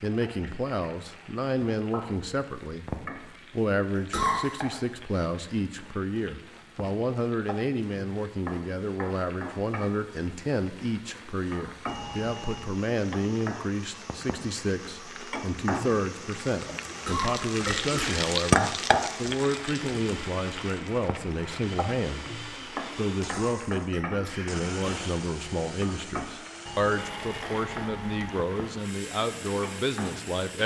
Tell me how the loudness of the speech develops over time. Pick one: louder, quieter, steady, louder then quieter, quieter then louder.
steady.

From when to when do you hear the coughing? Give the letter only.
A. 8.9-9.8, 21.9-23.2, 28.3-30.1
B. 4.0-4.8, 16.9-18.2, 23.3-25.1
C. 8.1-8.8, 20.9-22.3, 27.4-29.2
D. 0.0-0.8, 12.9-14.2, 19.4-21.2
B.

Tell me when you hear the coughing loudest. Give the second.
4 s.